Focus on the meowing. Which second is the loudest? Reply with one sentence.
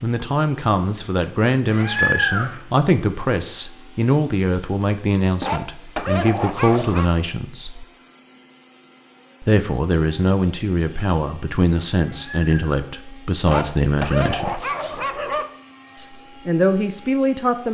The loudest moment of the meowing is at 2 seconds.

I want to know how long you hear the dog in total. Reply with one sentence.
The dog can be heard for 4 seconds in total.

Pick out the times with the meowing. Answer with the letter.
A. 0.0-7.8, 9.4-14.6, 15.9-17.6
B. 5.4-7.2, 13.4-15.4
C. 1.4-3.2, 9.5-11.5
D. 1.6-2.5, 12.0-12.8
D.